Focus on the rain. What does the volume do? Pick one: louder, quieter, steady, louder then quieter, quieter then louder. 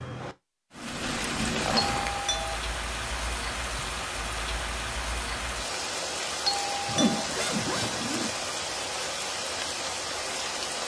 steady.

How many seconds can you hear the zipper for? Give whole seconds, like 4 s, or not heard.
2 s.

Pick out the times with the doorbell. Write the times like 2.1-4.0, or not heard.
1.8-2.6, 6.5-7.3.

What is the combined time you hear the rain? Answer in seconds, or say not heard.
11 s.